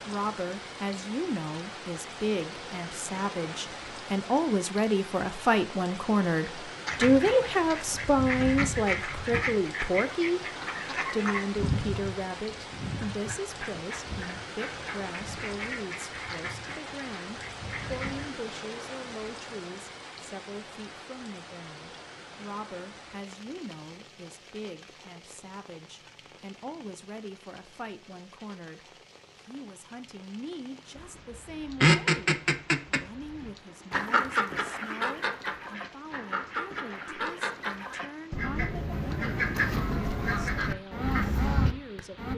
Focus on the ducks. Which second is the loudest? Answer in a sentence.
The loudest moment of the ducks is at 32 seconds.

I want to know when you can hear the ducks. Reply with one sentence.
The ducks can be heard from 6.8 to 18.2 s and from 30.9 to 42.3 s.